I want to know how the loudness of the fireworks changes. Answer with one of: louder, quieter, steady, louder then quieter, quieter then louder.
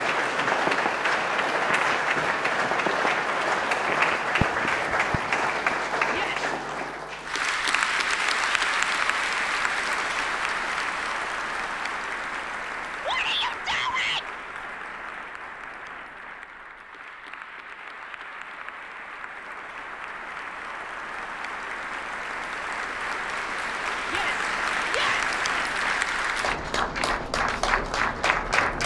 steady.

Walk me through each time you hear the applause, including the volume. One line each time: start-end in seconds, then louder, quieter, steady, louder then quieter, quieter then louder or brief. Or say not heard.
0.0-28.8 quieter then louder.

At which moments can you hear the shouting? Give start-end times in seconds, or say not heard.
6.1-6.5, 13.1-14.2, 24.1-25.4.